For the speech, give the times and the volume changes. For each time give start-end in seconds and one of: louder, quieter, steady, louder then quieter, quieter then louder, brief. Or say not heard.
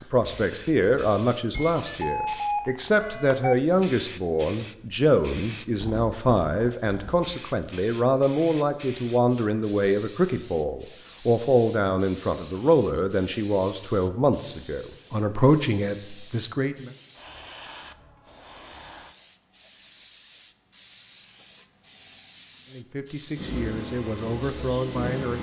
0.0-16.9 steady
22.7-25.3 brief.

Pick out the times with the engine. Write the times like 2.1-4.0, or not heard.
23.4-25.3.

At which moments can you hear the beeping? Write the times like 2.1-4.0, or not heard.
1.5-3.5.